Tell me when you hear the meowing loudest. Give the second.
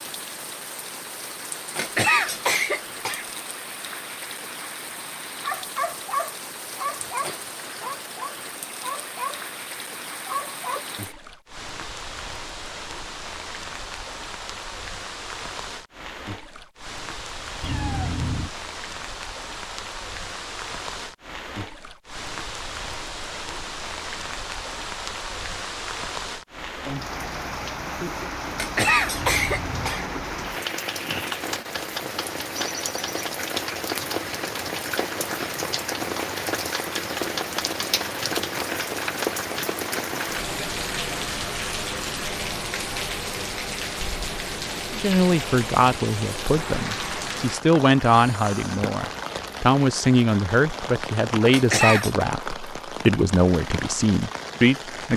18 s.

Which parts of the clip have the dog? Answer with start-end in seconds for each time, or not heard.
5.4-9.4, 10.2-10.8.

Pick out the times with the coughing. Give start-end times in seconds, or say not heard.
1.8-3.2, 28.6-30.1, 51.5-52.2.